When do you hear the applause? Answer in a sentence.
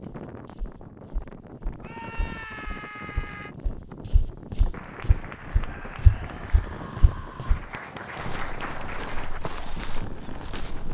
You can hear the applause from 4.7 to 9.4 s.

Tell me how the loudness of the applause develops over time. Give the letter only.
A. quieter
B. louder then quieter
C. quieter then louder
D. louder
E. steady
C.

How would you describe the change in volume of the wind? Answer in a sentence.
The volume of the wind stays about the same.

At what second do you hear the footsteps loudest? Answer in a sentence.
The loudest moment of the footsteps is at 6 seconds.